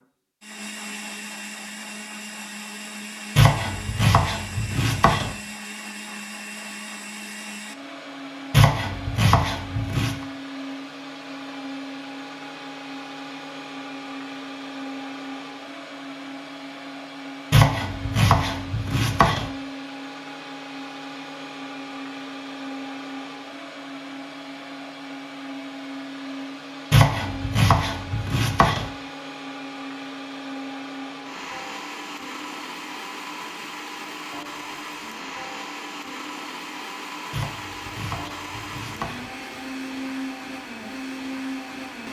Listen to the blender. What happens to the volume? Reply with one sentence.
The loudness of the blender stays about the same.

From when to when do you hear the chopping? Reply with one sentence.
The chopping can be heard from 3.4 to 5.3 s, from 8.5 to 10.2 s, from 17.5 to 19.5 s, from 26.9 to 28.9 s and from 37.3 to 39.3 s.